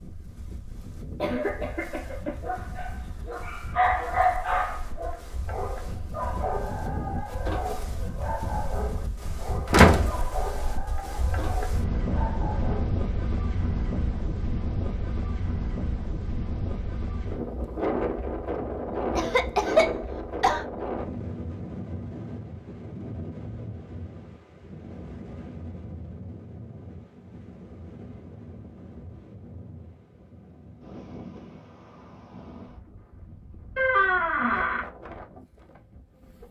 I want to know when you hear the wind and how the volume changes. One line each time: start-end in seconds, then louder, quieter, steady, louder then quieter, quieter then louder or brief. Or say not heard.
0.0-36.4 louder then quieter.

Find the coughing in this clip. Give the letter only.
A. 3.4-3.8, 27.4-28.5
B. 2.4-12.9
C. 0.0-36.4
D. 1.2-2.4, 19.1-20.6
D.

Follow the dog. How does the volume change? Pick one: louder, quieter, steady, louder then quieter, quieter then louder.
quieter.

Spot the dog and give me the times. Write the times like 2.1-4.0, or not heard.
2.4-12.9.